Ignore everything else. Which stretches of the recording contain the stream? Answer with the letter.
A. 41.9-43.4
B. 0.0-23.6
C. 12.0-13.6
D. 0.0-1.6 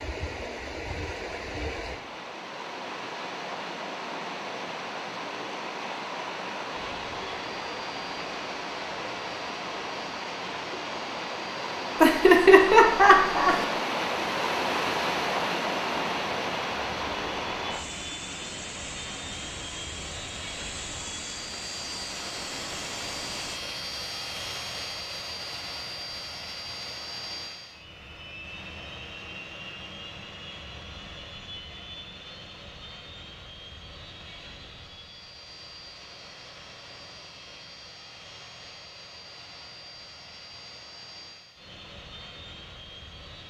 B.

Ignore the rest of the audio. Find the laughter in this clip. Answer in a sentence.
You can hear the laughter from 12.0 to 13.6 s.